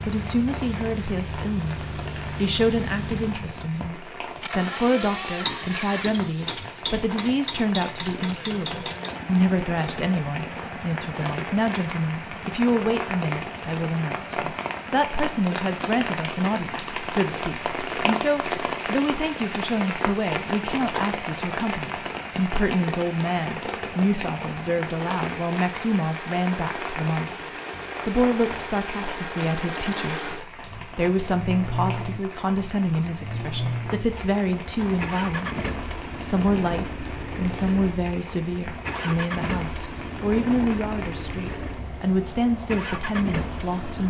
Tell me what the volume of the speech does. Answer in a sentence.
The volume of the speech stays about the same.